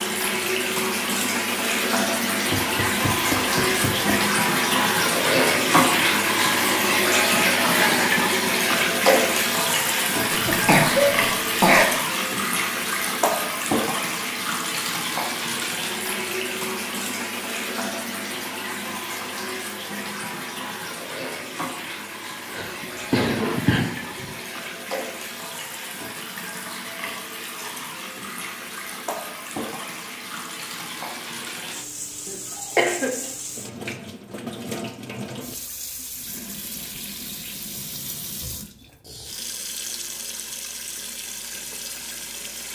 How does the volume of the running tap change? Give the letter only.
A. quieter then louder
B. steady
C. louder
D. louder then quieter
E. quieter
E.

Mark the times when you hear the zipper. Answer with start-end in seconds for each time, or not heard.
not heard.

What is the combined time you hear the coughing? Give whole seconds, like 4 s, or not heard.
4 s.